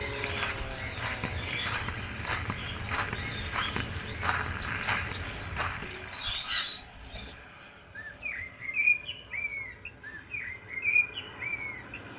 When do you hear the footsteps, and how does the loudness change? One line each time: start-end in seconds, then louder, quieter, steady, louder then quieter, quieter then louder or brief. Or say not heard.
0.0-6.2 steady.